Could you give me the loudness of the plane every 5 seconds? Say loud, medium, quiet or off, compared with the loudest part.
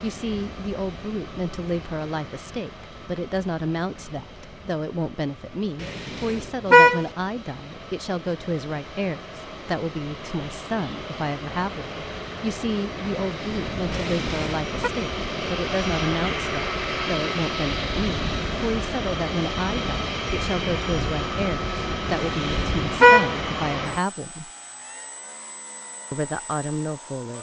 quiet, quiet, medium, loud, loud, quiet.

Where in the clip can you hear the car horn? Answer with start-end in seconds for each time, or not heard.
5.8-7.0, 13.9-14.9, 22.1-23.4.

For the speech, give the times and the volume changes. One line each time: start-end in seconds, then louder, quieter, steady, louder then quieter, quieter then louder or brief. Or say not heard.
0.0-24.5 steady
26.1-27.3 brief.